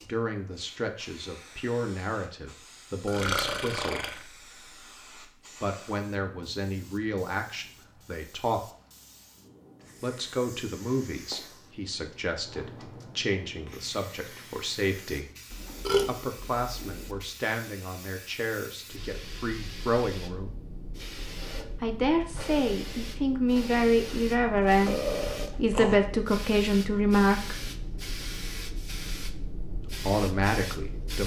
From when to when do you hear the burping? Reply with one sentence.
You can hear the burping from 3.0 to 4.2 s, from 15.5 to 17.2 s and from 24.1 to 25.9 s.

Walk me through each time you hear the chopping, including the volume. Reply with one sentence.
You can't hear the chopping here.